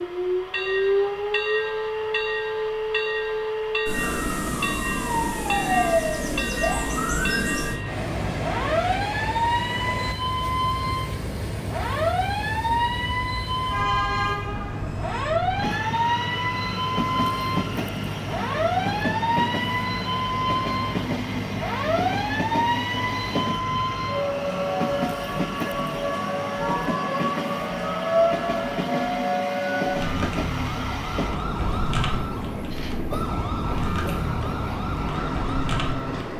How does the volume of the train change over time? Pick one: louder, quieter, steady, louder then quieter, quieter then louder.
steady.